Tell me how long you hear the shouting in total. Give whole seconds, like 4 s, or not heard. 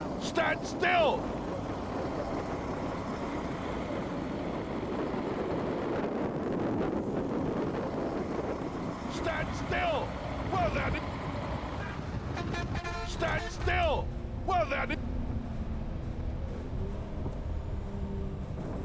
5 s.